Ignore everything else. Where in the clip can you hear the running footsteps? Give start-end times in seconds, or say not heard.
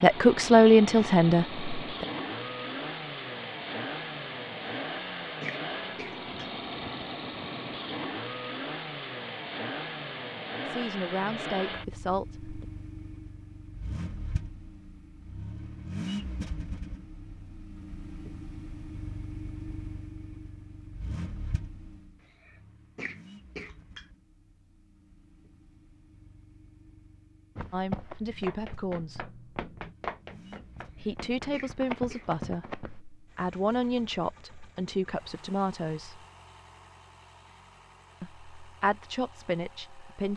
27.6-33.0.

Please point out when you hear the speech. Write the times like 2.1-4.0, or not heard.
0.0-2.0, 10.7-12.7, 27.7-29.4, 31.0-36.2, 38.2-40.3.